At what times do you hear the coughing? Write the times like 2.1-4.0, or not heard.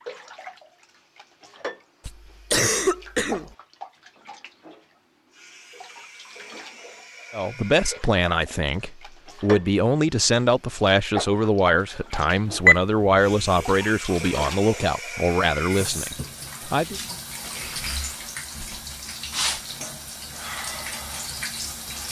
2.0-3.5.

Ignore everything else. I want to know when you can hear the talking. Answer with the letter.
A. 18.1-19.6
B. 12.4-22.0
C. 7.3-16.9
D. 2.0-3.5
C.